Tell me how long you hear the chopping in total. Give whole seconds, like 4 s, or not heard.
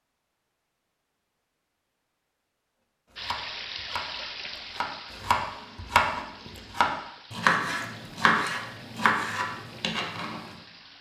7 s.